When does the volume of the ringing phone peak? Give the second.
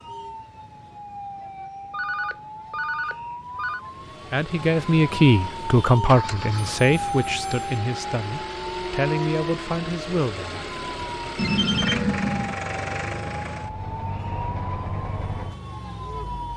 12 s.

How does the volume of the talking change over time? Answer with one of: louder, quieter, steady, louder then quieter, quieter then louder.
quieter.